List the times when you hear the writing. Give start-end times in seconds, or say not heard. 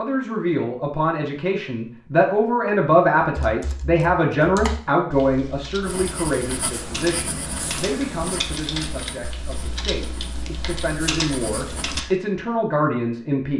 5.8-12.2.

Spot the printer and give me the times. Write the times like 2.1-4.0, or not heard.
not heard.